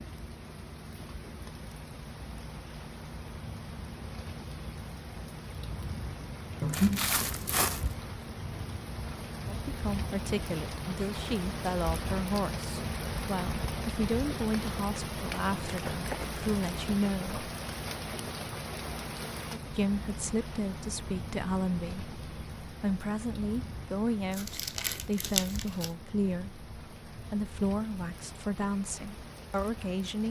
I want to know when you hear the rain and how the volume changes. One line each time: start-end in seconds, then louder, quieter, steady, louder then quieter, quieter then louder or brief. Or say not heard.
0.0-30.2 louder then quieter.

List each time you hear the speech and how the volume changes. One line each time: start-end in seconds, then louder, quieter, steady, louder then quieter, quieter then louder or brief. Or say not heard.
9.4-17.4 steady
19.7-30.2 steady.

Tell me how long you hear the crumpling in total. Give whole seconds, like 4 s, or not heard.
4 s.